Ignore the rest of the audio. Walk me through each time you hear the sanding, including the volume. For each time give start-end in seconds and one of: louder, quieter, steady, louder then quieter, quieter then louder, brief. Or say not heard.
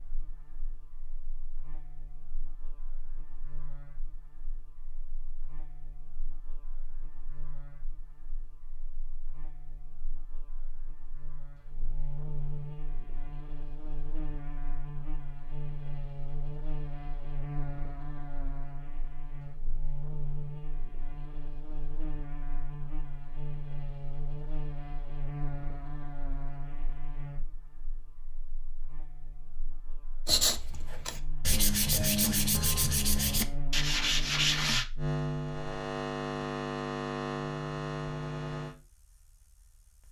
30.2-34.9 louder.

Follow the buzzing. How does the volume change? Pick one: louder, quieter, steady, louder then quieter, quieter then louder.
louder.